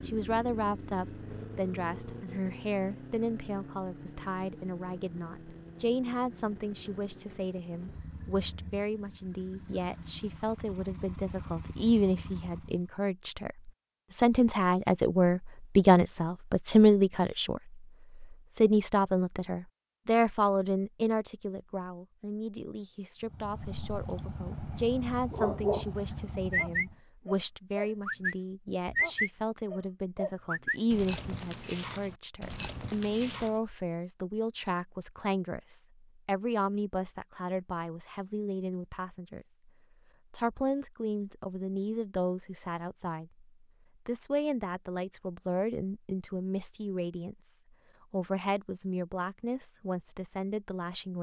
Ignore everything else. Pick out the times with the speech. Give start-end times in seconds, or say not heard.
0.1-39.5, 40.3-43.5, 44.0-51.1.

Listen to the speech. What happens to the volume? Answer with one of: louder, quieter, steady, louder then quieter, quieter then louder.
louder then quieter.